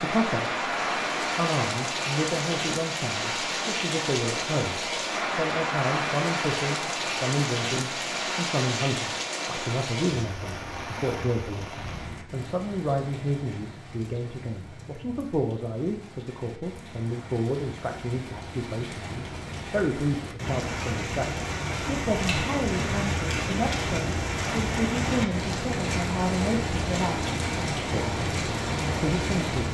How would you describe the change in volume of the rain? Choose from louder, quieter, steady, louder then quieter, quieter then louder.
quieter then louder.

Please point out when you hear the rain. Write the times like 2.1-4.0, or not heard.
0.0-29.6.